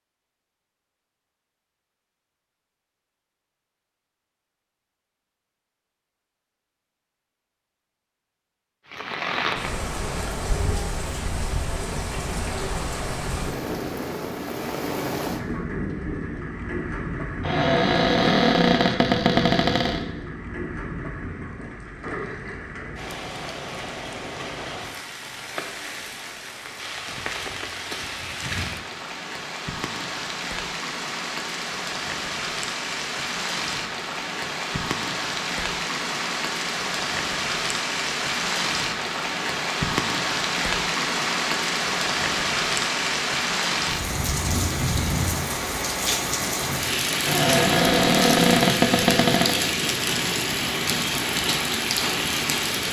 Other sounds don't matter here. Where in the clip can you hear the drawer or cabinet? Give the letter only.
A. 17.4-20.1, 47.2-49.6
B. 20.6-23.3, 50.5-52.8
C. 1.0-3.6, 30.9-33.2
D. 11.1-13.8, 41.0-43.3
A.